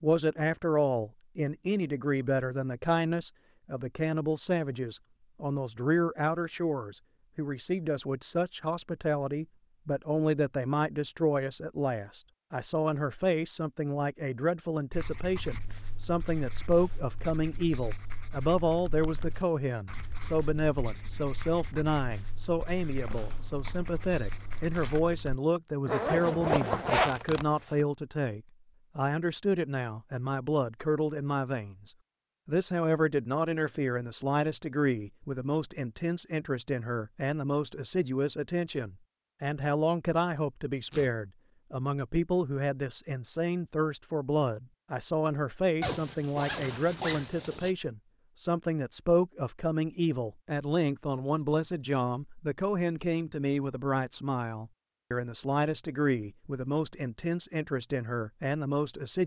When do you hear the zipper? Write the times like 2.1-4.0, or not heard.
25.9-27.9, 45.8-47.8.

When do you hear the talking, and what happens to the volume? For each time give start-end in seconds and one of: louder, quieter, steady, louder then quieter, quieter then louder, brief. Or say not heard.
0.0-59.2 steady.